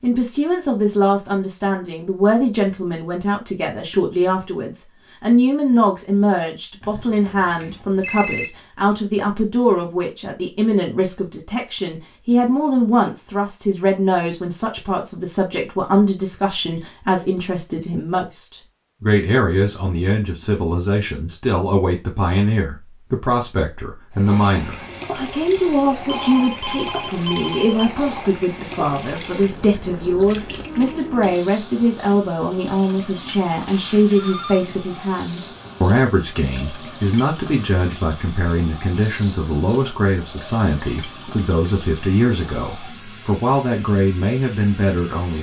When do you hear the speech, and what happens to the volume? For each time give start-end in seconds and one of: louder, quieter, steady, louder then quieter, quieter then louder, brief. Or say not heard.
0.0-45.3 steady.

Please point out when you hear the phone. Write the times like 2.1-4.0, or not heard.
6.8-8.5, 26.1-27.9, 33.6-34.6.